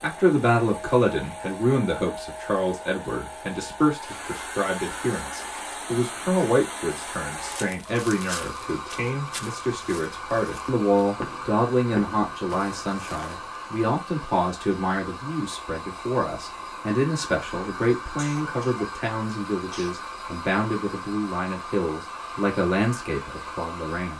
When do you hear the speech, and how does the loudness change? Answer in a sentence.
The speech can be heard from 0.0 to 24.1 s, at a steady volume.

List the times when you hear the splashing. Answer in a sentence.
The splashing can't be heard in this clip.